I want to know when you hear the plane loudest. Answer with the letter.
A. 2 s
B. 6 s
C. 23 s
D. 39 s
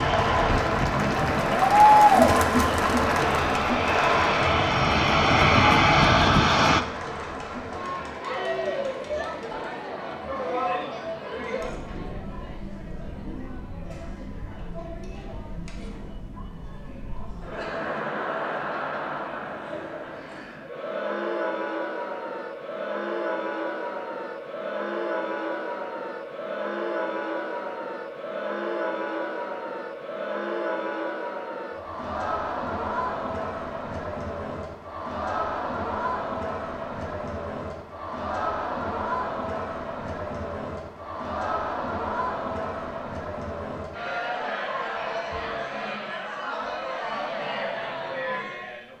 B.